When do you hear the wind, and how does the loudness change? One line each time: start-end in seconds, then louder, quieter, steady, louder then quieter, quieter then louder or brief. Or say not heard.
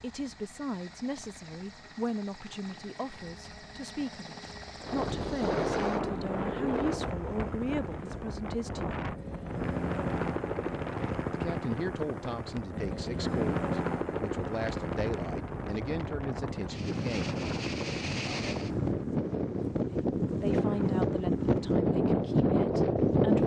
4.8-23.4 quieter then louder.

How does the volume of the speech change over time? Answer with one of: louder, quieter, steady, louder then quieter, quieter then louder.
steady.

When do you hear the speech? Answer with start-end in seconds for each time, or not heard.
0.0-8.9, 11.3-17.4, 19.9-23.4.